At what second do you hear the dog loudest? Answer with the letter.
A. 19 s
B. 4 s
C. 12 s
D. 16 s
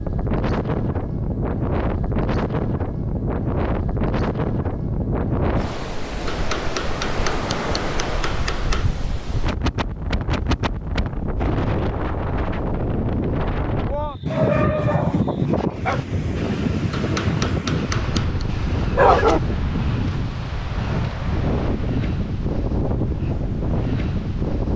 A.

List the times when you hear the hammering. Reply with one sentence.
You can hear the hammering from 6.2 to 8.9 s and from 16.9 to 18.4 s.